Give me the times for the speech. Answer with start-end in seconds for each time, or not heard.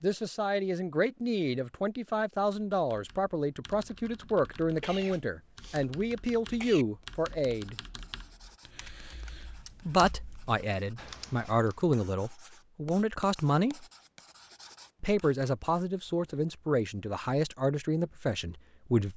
0.0-7.8, 9.8-13.8, 15.0-19.1.